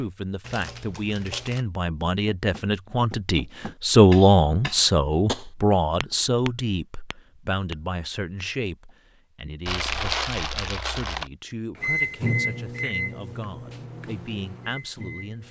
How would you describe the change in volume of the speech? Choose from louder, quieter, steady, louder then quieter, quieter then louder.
louder then quieter.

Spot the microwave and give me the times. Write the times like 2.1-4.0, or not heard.
11.8-15.4.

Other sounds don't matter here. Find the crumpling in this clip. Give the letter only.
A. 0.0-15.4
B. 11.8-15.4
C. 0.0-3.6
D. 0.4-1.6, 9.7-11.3
D.